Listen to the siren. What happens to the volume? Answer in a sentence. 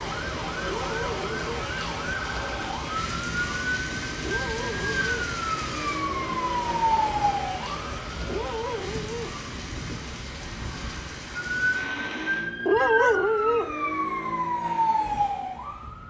The volume of the siren goes up.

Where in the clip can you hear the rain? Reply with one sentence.
The rain can be heard from 0.0 to 12.5 s.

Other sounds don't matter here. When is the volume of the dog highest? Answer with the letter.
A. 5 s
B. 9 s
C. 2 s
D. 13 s
D.